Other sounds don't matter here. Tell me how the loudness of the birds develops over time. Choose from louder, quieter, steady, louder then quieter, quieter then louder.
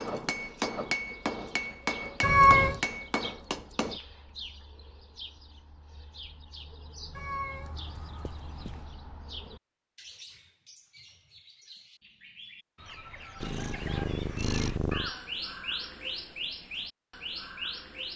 louder.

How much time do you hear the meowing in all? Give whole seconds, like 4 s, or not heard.
4 s.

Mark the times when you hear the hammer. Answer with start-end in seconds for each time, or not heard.
0.0-4.0.